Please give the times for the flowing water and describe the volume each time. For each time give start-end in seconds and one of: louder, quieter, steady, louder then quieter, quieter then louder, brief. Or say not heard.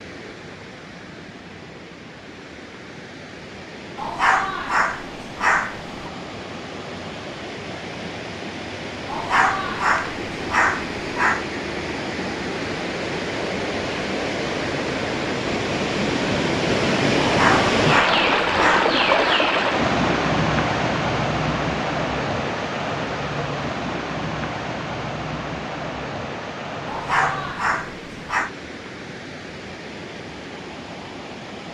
0.0-31.6 louder then quieter.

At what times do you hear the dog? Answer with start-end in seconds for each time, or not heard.
4.0-6.0, 9.1-11.4, 17.2-19.4, 26.9-28.5.